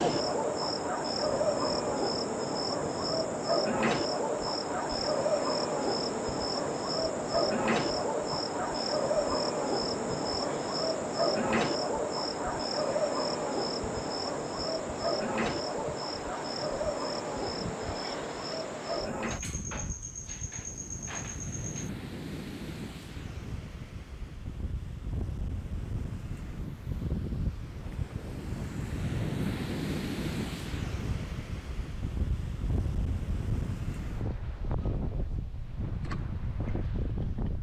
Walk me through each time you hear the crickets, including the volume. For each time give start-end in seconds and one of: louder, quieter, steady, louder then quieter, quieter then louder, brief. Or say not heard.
0.0-21.9 quieter.